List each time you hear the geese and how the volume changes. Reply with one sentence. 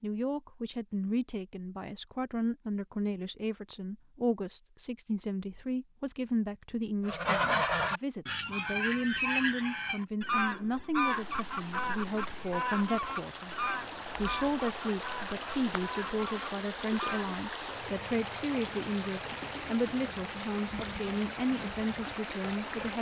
The geese can be heard from 7.0 to 17.3 s, getting quieter.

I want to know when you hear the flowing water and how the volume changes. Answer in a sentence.
The flowing water can be heard from 11.0 to 22.9 s, getting louder.